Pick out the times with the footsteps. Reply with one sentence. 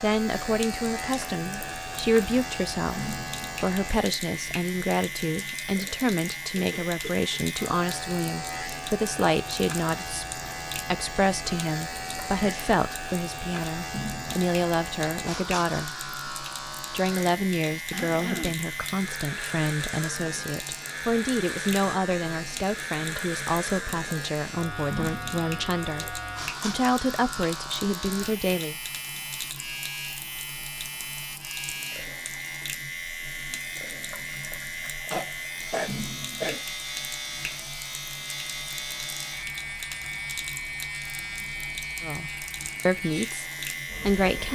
The footsteps can't be heard in this clip.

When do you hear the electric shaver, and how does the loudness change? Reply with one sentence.
The electric shaver can be heard from 0.0 to 44.5 s, at a steady volume.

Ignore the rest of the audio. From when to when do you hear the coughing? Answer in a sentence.
You can hear the coughing from 6.5 to 7.5 s, from 17.9 to 18.6 s and from 35.1 to 36.6 s.